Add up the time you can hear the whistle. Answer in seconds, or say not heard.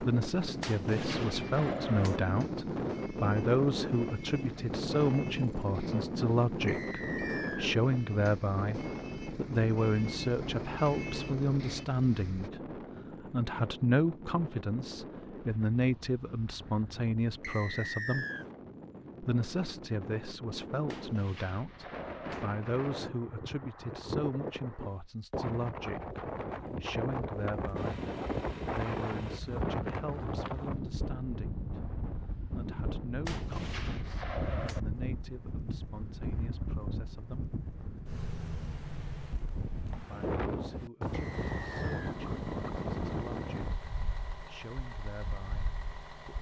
3 s.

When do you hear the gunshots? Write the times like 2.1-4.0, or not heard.
0.6-2.2, 20.9-22.4, 33.2-34.8.